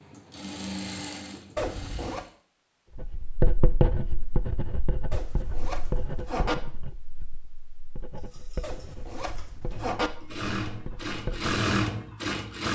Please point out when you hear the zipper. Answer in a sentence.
The zipper can be heard from 1.6 to 2.2 s, from 5.1 to 6.5 s and from 8.6 to 10.1 s.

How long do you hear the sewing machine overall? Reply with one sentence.
The sewing machine can be heard for 7 seconds in total.